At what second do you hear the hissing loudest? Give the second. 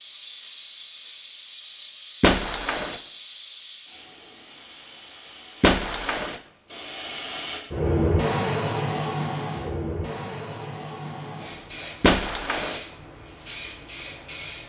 8 s.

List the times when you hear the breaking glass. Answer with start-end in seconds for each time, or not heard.
2.2-3.0, 5.6-6.4, 12.0-12.8.